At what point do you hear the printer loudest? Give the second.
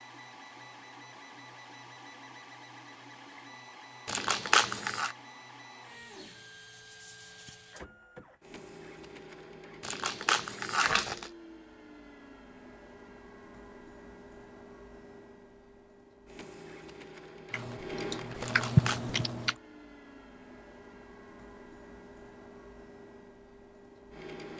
18 s.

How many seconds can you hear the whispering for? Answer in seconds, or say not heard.
not heard.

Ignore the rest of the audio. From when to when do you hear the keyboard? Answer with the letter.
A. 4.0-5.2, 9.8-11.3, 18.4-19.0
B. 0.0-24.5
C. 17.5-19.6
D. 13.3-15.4
C.